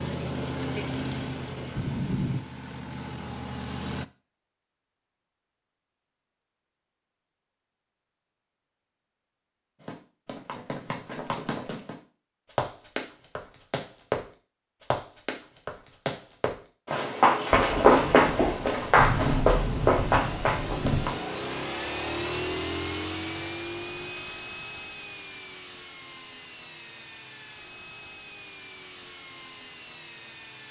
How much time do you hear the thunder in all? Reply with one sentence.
The thunder can be heard for 5 seconds in total.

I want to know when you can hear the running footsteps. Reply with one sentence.
The running footsteps can be heard from 9.8 to 21.2 s.